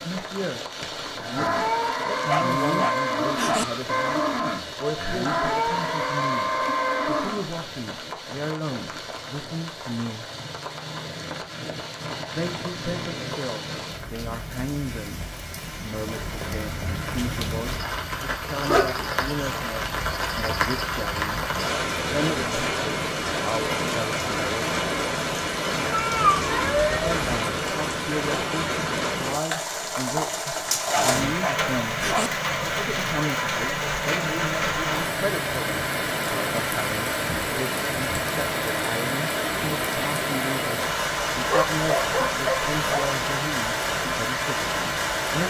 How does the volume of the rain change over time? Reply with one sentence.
The volume of the rain goes up.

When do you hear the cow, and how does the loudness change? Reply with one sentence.
The cow can be heard from 1.1 to 7.5 s, at a steady volume.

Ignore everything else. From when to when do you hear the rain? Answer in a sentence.
The rain can be heard from 0.0 to 45.4 s.